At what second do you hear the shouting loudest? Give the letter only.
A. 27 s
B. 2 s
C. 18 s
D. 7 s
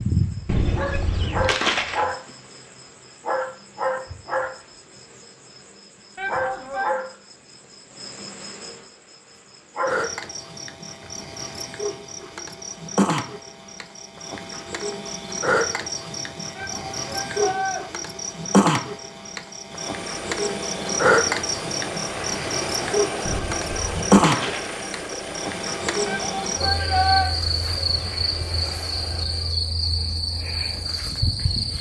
A.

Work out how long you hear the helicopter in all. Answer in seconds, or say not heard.
10 s.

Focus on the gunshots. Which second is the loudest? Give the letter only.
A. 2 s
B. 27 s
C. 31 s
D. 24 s
A.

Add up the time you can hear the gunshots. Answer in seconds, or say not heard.
3 s.